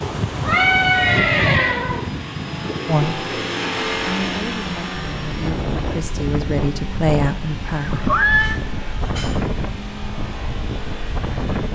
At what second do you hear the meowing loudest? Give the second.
1 s.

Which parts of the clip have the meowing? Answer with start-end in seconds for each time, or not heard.
0.0-2.1, 8.3-9.6.